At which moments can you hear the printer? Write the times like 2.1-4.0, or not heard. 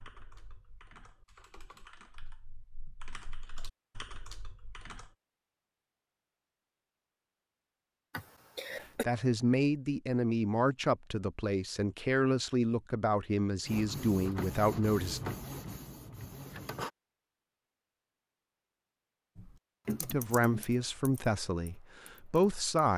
13.7-16.9.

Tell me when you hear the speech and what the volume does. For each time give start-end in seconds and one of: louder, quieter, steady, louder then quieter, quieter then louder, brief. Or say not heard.
9.0-15.2 steady
20.0-22.9 brief.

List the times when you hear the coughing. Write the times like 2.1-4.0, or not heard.
8.1-9.1.